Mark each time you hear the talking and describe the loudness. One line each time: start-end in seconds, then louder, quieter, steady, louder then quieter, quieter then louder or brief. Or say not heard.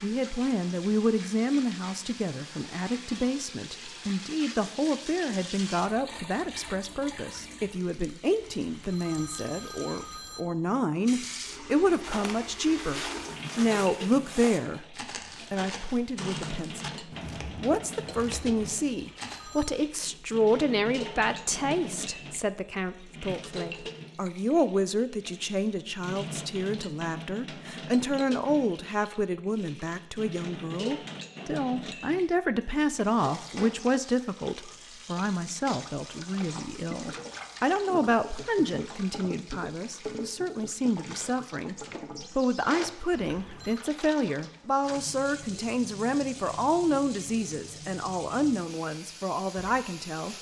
0.0-50.3 steady.